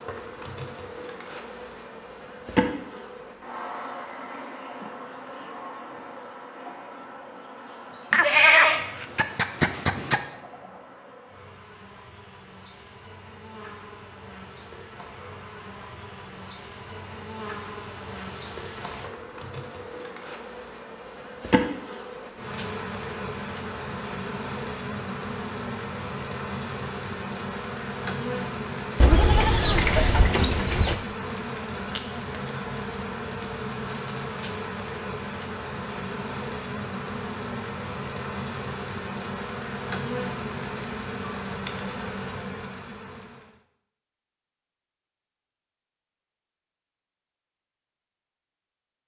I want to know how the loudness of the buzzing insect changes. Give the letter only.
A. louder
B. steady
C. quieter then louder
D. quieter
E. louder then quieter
C.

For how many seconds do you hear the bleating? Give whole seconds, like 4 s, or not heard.
4 s.